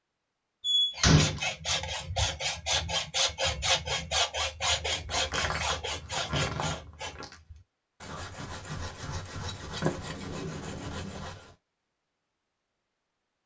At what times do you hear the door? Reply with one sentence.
You can hear the door from 0.6 to 1.5 s, from 5.0 to 7.3 s and from 9.8 to 11.2 s.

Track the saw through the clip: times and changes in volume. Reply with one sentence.
You can hear the saw from 0.9 to 11.6 s, getting quieter.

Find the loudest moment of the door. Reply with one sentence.
The loudest moment of the door is at 1 second.